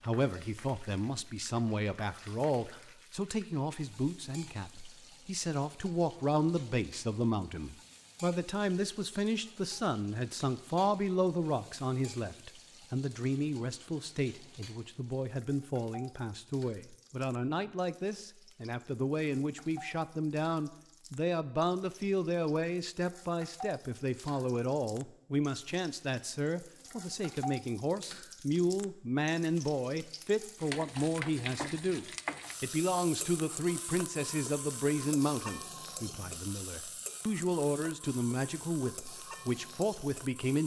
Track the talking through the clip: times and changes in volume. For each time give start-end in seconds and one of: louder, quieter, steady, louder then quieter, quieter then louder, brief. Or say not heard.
0.0-40.6 steady.